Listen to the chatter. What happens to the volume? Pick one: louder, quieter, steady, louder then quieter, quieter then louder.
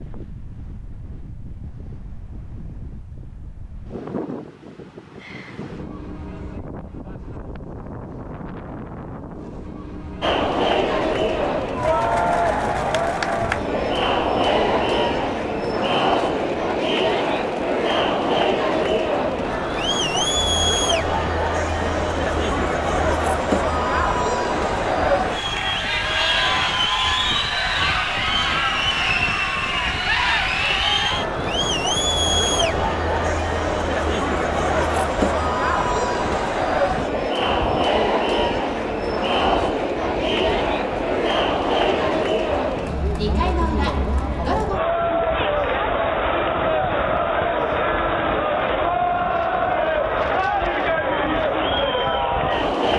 steady.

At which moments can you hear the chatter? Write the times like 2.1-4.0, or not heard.
10.2-52.9.